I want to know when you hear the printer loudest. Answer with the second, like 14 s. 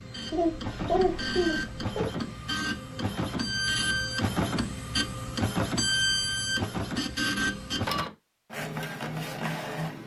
6 s.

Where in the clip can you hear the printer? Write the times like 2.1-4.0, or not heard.
0.0-10.0.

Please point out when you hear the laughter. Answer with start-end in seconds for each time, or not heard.
0.3-2.1.